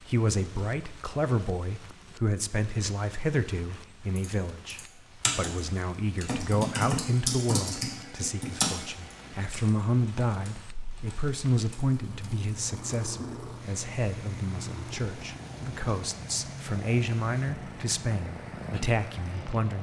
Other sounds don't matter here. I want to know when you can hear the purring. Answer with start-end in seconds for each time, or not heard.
12.0-19.7.